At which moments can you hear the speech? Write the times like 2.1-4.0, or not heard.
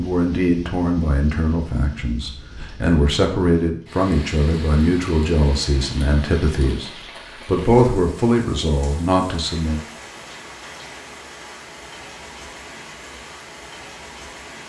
0.0-9.8.